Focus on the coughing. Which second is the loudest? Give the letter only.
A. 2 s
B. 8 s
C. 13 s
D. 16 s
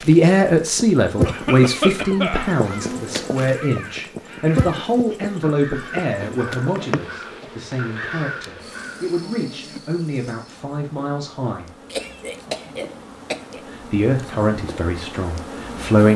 A.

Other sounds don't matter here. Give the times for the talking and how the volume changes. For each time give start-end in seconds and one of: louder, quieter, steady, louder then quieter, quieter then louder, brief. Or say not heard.
0.0-11.8 quieter
13.6-16.1 brief.